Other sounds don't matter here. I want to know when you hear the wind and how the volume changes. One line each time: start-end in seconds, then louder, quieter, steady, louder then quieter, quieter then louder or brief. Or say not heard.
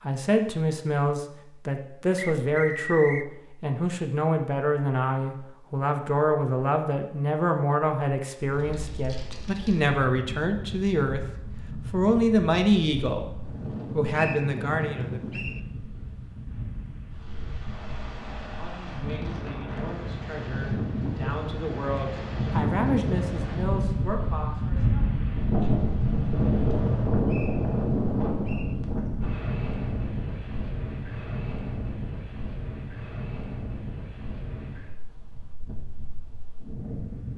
8.4-37.3 louder then quieter.